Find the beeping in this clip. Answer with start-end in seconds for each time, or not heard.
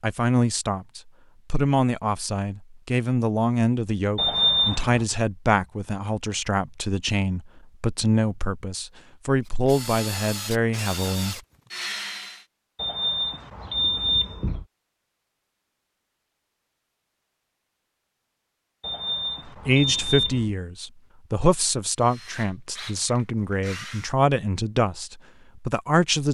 4.2-5.0, 12.8-14.7, 18.8-20.6.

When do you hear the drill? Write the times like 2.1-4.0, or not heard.
9.4-12.4, 21.9-24.1.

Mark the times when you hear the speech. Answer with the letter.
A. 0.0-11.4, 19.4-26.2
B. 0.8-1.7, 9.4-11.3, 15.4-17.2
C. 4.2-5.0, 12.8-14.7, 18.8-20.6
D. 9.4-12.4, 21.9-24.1
A.